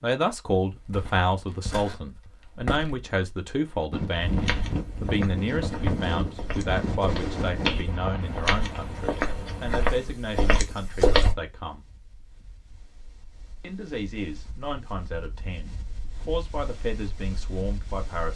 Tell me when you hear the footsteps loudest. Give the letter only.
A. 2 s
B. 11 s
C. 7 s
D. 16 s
B.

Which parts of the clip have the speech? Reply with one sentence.
The speech can be heard from 0.0 to 11.8 s and from 13.6 to 18.3 s.